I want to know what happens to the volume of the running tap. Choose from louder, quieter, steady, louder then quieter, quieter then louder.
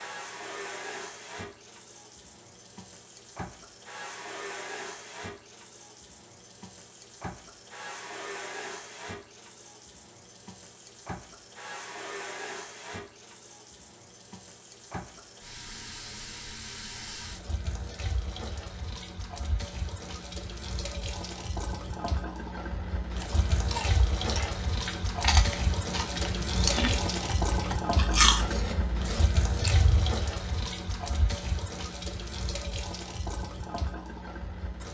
louder.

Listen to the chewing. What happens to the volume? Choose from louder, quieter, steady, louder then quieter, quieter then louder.
louder then quieter.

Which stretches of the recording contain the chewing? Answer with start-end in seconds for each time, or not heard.
23.1-30.1.